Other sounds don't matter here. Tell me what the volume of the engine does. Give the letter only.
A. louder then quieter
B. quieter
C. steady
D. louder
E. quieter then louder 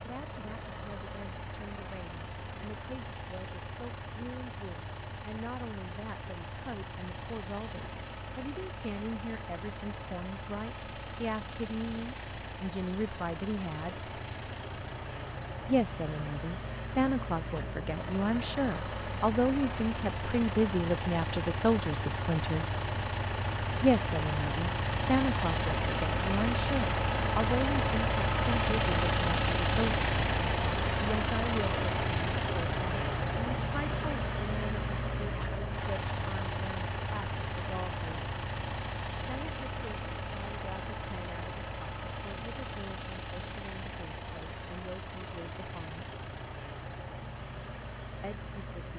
A.